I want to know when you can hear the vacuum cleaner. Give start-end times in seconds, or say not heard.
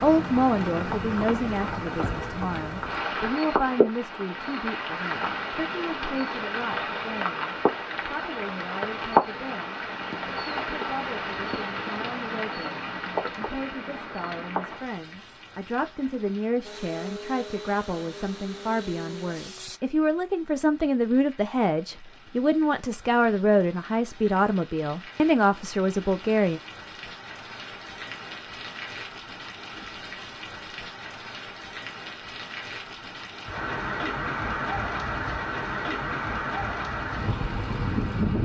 16.6-19.8.